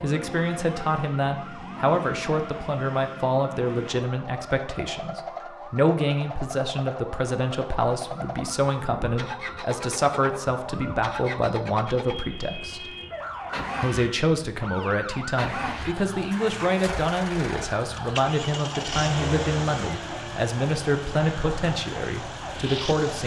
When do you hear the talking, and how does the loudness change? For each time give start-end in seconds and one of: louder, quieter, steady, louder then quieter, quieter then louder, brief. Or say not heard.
0.0-12.9 steady
13.8-23.2 steady.